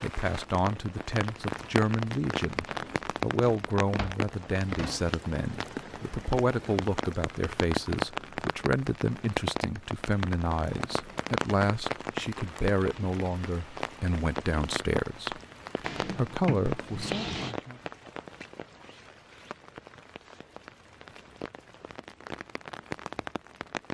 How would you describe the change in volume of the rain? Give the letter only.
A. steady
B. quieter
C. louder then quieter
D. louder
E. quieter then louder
B.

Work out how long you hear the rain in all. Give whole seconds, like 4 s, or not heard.
24 s.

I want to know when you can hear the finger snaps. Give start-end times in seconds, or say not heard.
not heard.